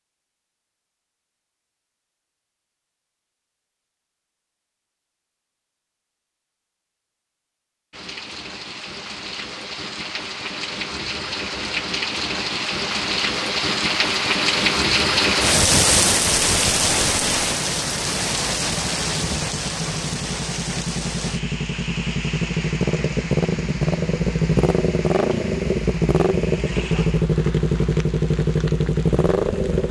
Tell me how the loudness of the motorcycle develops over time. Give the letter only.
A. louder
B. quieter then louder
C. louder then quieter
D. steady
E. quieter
A.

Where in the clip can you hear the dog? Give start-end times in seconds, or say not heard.
not heard.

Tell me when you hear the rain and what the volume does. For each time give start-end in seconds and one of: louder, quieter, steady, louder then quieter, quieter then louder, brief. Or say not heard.
7.9-29.8 louder then quieter.